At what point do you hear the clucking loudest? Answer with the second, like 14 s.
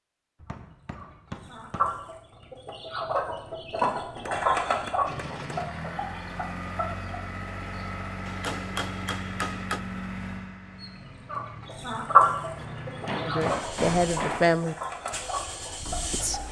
12 s.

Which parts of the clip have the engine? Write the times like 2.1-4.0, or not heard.
5.0-16.4.